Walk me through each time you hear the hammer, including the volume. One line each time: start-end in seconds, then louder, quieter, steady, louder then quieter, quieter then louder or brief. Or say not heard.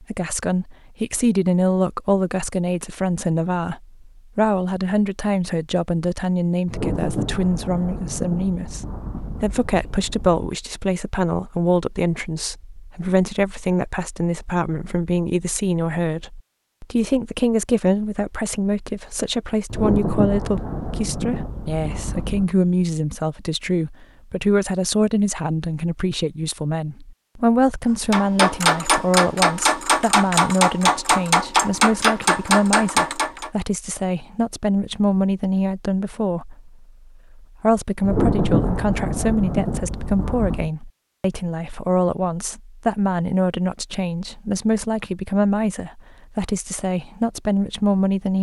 28.1-33.5 steady.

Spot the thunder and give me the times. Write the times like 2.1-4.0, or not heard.
6.7-10.4, 19.7-22.6, 38.0-40.7.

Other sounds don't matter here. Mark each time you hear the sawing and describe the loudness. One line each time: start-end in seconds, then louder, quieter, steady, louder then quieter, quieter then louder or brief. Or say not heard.
not heard.